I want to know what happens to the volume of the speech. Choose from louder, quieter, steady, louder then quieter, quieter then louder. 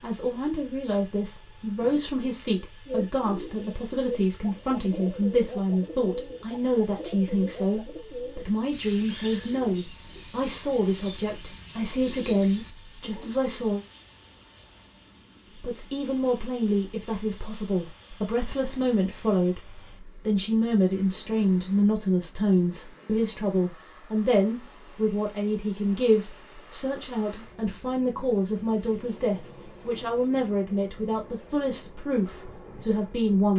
steady.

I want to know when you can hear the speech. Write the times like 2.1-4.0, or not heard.
0.0-13.8, 15.6-33.5.